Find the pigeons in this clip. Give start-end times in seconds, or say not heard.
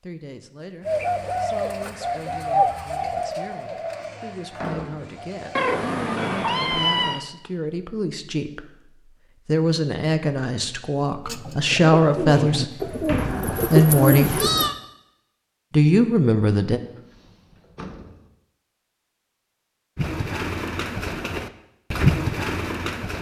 0.8-5.8, 11.2-14.7, 19.9-23.1.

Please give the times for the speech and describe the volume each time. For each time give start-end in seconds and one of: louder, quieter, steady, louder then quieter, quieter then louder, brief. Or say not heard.
0.0-14.4 louder
15.7-16.8 brief.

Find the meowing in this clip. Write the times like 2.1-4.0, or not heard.
5.5-7.2, 13.2-14.8.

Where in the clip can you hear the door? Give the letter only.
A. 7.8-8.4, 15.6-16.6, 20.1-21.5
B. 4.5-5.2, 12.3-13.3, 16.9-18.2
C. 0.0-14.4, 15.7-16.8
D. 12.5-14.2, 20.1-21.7
B.